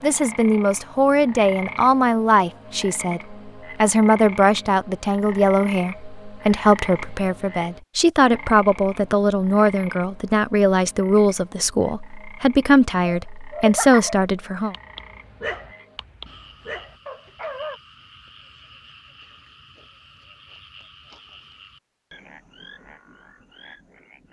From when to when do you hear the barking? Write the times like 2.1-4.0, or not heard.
12.8-17.8.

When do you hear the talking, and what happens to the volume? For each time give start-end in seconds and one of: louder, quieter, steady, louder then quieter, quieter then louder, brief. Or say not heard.
0.0-14.8 steady.